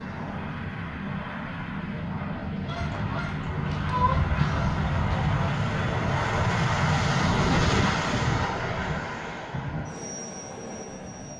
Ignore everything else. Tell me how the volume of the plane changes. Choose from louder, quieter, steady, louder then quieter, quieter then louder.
louder then quieter.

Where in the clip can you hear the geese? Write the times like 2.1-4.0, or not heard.
2.6-5.5.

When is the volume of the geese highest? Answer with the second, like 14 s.
4 s.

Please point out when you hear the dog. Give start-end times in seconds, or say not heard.
not heard.